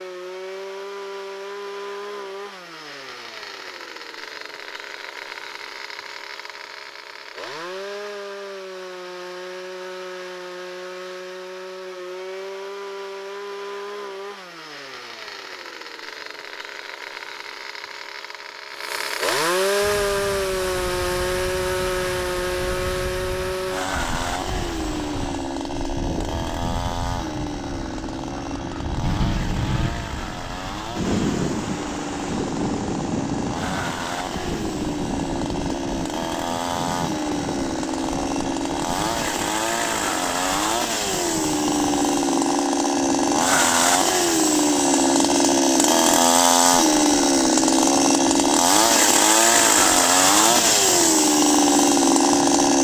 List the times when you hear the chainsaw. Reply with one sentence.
You can hear the chainsaw from 0.0 to 52.7 s.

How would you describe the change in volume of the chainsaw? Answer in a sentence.
The loudness of the chainsaw goes up.